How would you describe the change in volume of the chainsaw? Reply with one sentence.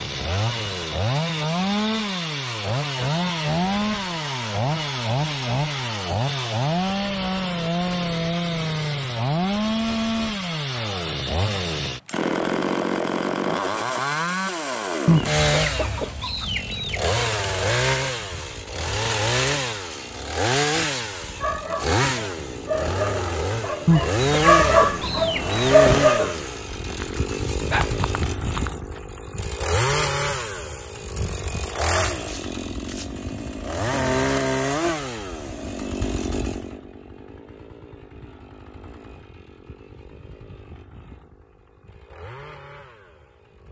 The volume of the chainsaw goes down.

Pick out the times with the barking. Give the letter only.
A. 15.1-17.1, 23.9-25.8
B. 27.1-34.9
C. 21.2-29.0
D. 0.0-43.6
C.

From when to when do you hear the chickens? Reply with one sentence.
You can hear the chickens from 15.1 to 17.1 s and from 23.9 to 25.8 s.